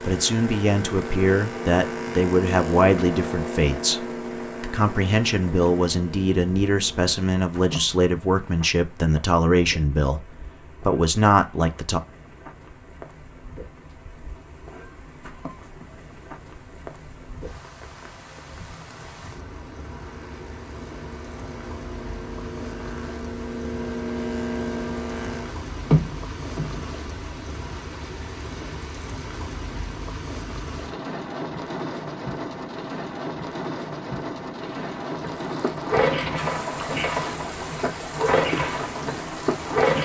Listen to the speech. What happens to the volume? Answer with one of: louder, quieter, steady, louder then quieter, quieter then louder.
steady.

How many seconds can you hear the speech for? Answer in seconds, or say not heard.
12 s.